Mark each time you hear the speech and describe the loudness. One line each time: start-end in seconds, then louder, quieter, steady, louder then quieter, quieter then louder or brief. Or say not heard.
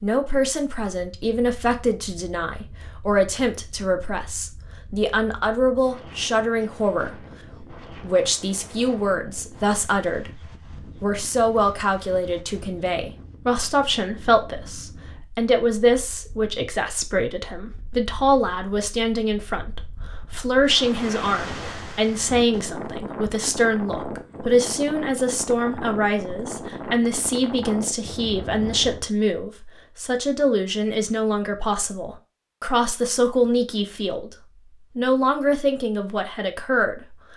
0.0-10.4 steady
11.0-34.3 steady
35.0-37.2 brief.